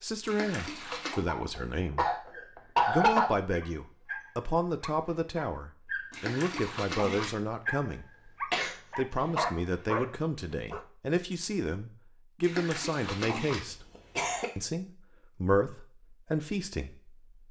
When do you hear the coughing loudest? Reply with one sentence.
The loudest moment of the coughing is at 3 seconds.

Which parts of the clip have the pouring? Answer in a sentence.
You can hear the pouring from 0.2 to 1.2 s, from 6.1 to 7.3 s and from 12.4 to 13.6 s.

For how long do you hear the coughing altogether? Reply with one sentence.
The coughing can be heard for 4 seconds in total.